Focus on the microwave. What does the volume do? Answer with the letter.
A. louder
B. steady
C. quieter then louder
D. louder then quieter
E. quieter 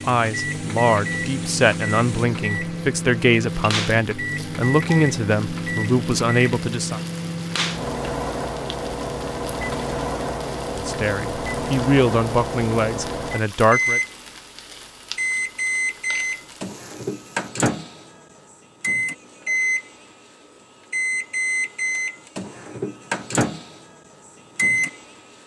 B.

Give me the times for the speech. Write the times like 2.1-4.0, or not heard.
0.1-7.0, 10.8-14.0.